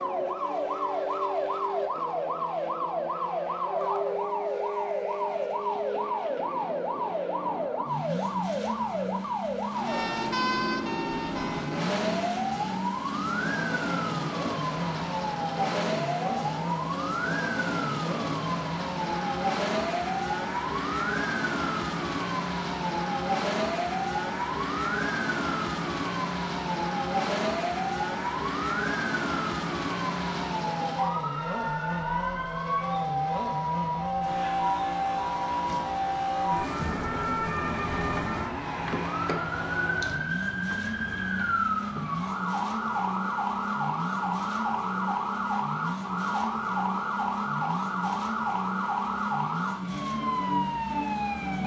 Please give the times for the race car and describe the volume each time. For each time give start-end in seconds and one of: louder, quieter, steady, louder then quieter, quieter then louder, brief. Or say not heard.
0.0-51.6 steady.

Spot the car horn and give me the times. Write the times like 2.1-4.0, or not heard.
not heard.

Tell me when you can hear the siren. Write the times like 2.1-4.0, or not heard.
0.0-51.6.